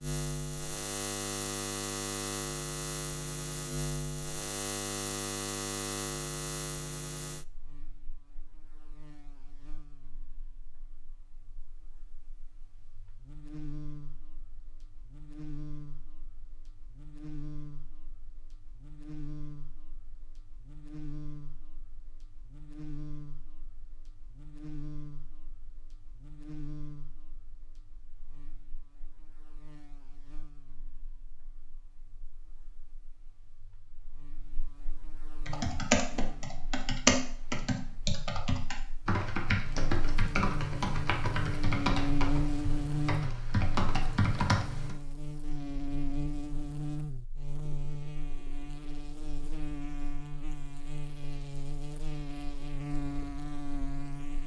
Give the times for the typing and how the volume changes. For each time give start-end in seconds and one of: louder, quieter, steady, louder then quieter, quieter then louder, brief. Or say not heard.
35.5-45.0 quieter.